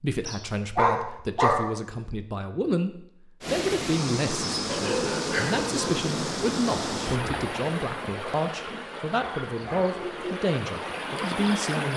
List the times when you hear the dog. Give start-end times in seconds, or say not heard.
0.2-1.6, 4.7-6.0, 9.2-10.3.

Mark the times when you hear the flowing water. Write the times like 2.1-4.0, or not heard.
3.4-11.9.